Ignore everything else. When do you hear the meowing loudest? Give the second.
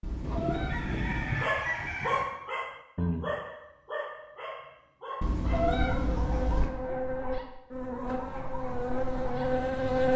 6 s.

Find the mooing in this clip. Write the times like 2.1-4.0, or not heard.
not heard.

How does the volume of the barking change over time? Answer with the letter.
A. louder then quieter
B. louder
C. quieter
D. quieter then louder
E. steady
C.